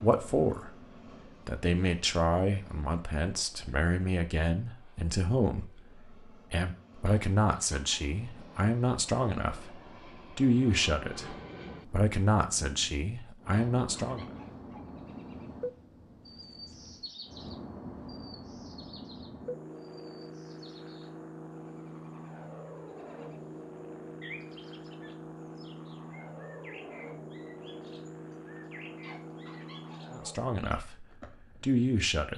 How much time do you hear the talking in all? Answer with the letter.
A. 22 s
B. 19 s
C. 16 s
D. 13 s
C.